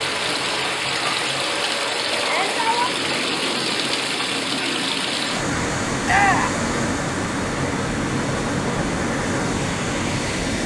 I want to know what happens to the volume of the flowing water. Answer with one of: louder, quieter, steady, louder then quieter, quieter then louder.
steady.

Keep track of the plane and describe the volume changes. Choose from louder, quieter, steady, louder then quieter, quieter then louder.
steady.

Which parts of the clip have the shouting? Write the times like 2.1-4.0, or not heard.
2.1-3.0, 6.0-6.6.